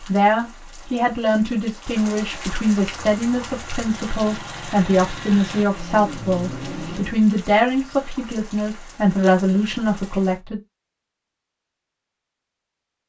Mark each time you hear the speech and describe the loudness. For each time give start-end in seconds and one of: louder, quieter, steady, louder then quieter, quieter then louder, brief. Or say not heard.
0.0-10.6 steady.